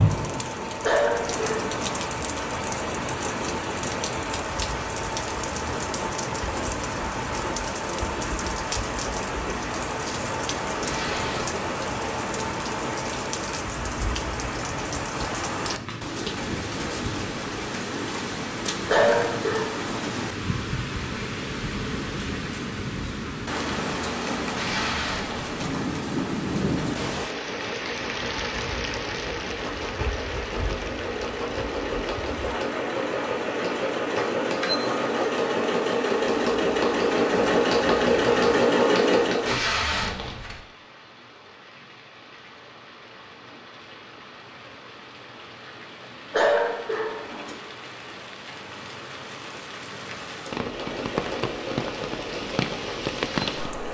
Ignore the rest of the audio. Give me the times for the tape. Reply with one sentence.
The tape can be heard from 10.8 to 11.6 s, from 24.6 to 25.5 s and from 39.5 to 40.6 s.